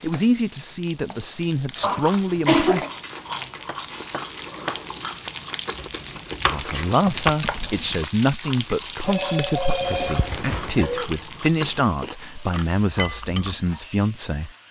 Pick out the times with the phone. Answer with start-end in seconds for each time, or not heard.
9.0-10.9.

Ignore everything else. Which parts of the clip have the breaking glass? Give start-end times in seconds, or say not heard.
not heard.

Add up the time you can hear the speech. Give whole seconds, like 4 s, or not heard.
11 s.